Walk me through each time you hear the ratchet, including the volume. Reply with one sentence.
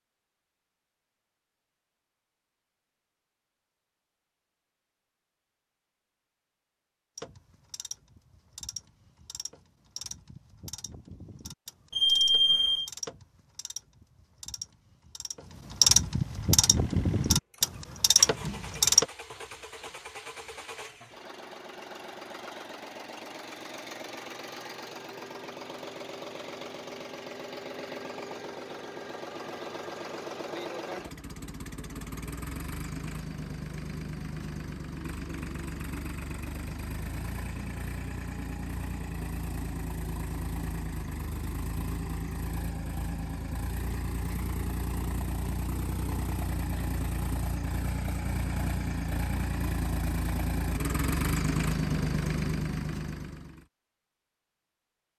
You can hear the ratchet from 7.2 to 19.1 s, getting louder.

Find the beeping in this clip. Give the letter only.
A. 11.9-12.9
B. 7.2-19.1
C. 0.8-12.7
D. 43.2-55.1
A.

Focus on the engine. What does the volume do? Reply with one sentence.
The volume of the engine goes up.